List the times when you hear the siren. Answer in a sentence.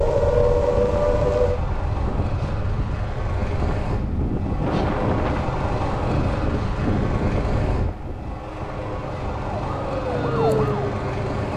You can hear the siren from 0.0 to 1.6 s and from 9.4 to 11.5 s.